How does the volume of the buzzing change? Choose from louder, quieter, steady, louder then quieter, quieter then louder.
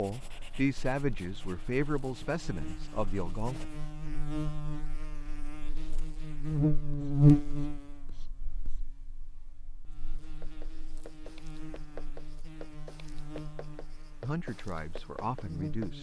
louder then quieter.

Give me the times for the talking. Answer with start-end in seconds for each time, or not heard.
0.0-3.6, 14.2-15.9.